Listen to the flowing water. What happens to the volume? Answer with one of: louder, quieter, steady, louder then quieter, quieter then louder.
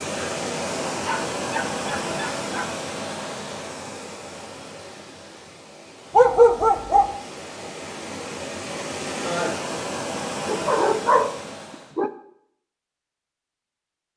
quieter then louder.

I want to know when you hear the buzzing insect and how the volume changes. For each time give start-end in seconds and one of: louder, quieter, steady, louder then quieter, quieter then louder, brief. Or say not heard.
not heard.